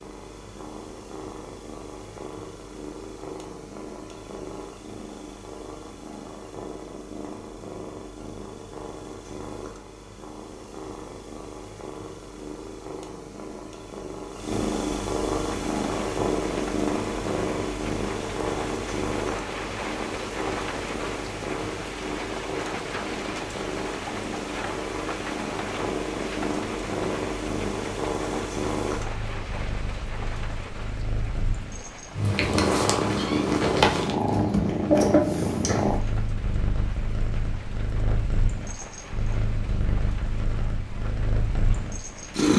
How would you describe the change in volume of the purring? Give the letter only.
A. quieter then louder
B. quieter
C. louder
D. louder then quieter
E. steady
C.